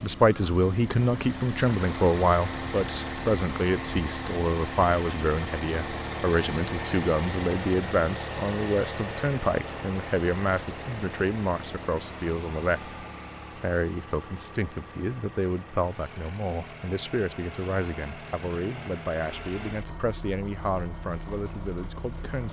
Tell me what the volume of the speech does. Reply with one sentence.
The loudness of the speech goes down.